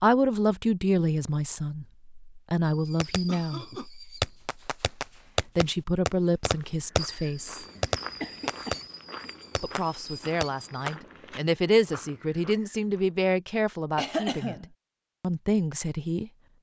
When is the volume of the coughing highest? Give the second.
14 s.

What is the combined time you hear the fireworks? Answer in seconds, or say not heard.
8 s.